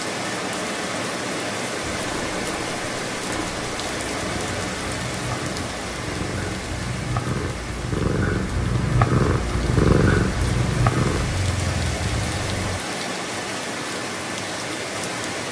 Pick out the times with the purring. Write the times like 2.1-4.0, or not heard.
1.9-12.8.